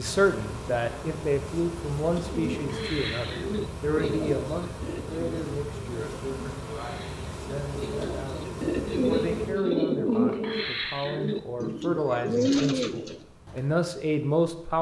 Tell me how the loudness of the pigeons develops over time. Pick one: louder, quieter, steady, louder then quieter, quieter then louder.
quieter then louder.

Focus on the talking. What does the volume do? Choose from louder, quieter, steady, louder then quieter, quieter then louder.
quieter then louder.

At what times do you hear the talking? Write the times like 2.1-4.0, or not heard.
0.0-14.7.